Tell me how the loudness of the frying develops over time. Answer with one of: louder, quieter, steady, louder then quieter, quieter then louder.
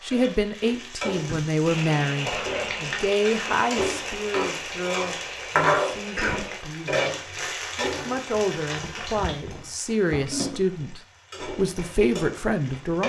louder then quieter.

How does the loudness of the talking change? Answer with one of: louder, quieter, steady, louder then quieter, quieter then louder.
quieter then louder.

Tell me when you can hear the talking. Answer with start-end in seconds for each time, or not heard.
0.0-7.2, 7.8-13.0.